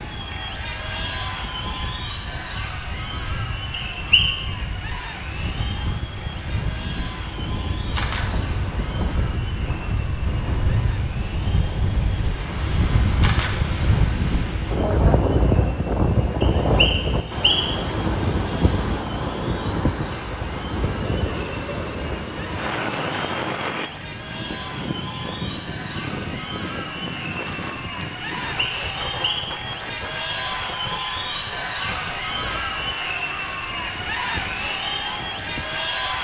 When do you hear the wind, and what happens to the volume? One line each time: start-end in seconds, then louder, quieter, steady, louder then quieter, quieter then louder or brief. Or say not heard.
0.0-36.2 louder then quieter.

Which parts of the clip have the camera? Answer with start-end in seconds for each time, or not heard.
7.8-8.2, 13.1-13.6, 27.3-27.8.